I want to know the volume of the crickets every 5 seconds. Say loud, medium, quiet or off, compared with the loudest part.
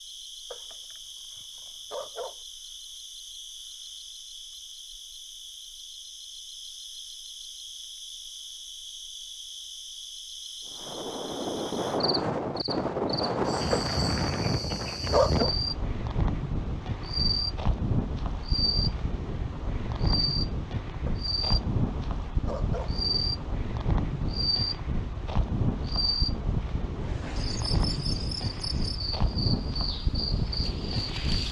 medium, medium, medium, loud, loud, loud, loud.